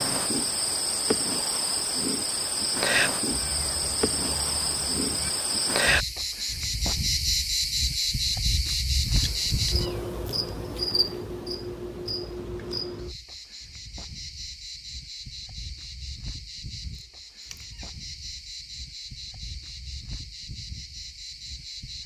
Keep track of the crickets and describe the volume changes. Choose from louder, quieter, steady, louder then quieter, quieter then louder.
quieter.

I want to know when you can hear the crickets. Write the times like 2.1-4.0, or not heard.
0.0-22.0.